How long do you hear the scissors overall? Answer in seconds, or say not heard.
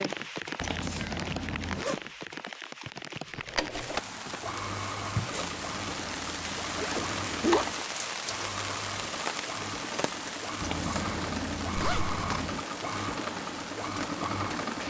6 s.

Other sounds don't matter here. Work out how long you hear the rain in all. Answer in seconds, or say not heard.
15 s.